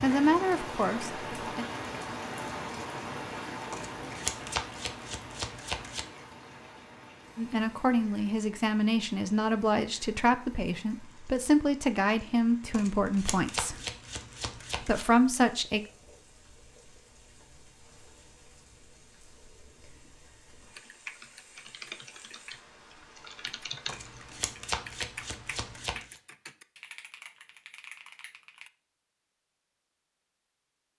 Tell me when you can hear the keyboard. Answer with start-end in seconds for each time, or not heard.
20.7-28.7.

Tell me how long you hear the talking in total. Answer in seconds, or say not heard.
9 s.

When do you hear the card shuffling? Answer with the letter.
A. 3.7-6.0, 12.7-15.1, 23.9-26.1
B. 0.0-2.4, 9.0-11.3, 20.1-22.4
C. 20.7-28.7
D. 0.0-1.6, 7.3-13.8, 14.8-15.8
A.